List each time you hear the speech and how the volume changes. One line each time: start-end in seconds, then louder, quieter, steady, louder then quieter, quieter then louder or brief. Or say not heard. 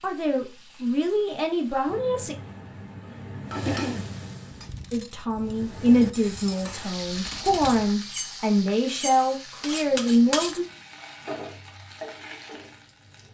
0.0-2.4 brief
4.9-10.7 quieter then louder.